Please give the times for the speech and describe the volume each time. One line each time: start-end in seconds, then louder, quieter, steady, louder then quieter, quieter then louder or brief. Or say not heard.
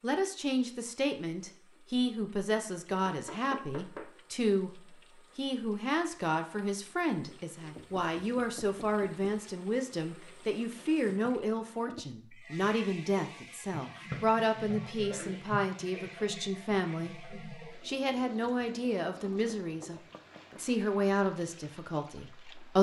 0.0-22.7 steady.